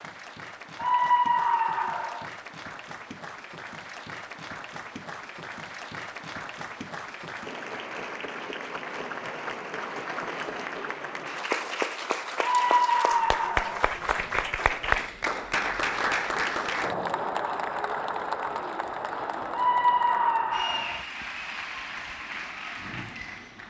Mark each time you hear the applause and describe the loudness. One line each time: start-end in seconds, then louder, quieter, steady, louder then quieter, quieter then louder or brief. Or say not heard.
0.0-23.6 louder then quieter.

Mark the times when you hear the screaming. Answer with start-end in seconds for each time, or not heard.
0.8-2.3, 12.4-13.9, 19.5-21.1.